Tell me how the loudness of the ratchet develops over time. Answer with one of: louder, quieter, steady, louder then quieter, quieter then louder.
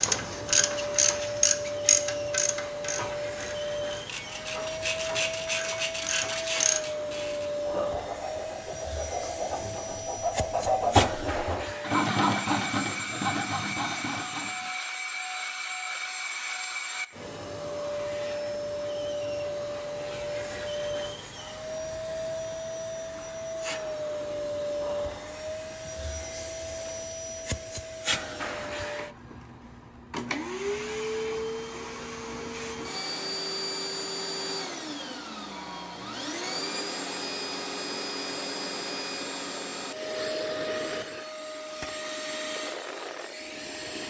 quieter then louder.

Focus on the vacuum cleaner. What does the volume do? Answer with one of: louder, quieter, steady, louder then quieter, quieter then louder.
steady.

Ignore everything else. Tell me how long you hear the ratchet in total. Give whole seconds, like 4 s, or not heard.
7 s.